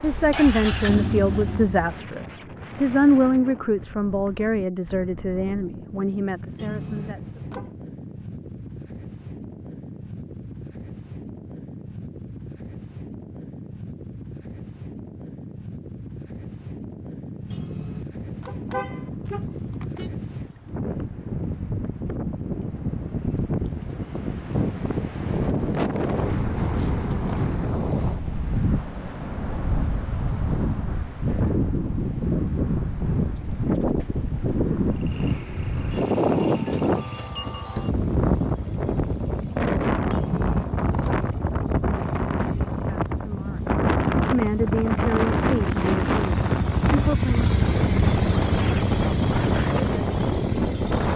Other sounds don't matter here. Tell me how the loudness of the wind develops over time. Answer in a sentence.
The volume of the wind goes up.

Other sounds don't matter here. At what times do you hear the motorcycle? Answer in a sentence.
The motorcycle can be heard from 0.0 to 2.0 s and from 34.9 to 51.1 s.